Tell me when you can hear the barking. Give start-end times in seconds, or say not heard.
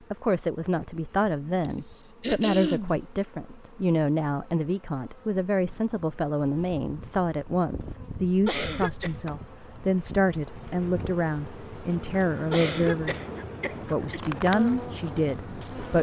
not heard.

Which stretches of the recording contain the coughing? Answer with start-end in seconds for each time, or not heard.
1.6-3.0, 8.4-9.2, 12.5-14.4.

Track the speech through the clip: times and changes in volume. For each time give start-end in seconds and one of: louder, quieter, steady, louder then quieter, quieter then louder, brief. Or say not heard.
0.1-13.2 steady
13.8-15.9 brief.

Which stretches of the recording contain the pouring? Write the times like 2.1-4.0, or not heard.
not heard.